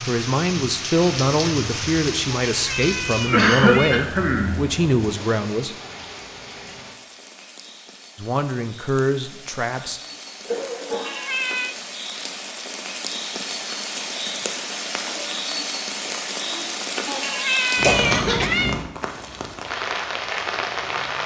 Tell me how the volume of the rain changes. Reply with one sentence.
The volume of the rain goes down, then up.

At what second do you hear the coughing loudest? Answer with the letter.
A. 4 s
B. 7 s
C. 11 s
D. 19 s
A.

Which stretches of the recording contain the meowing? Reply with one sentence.
You can hear the meowing from 2.5 to 4.1 s, from 10.9 to 11.8 s and from 17.1 to 18.8 s.